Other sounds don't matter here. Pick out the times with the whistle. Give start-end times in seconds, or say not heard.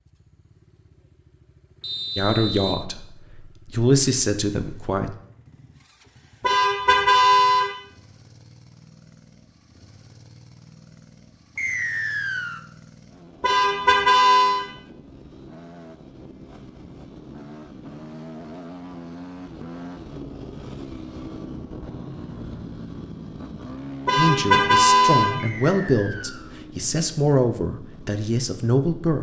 1.8-2.9, 11.6-12.7, 25.4-26.5.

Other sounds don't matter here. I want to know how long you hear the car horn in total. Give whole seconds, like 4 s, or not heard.
4 s.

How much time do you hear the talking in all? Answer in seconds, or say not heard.
8 s.